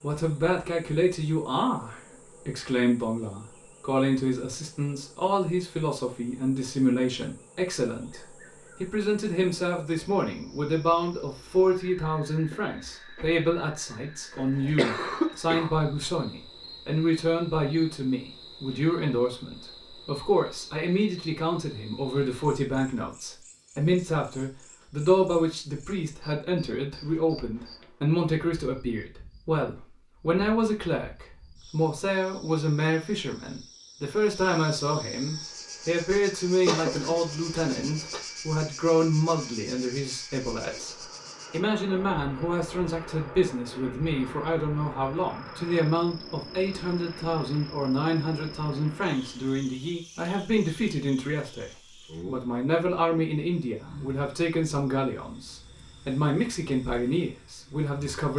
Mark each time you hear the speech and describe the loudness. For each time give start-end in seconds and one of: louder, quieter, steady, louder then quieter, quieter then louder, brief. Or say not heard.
0.0-58.3 steady.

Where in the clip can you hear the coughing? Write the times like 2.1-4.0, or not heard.
14.3-15.7, 36.6-38.2.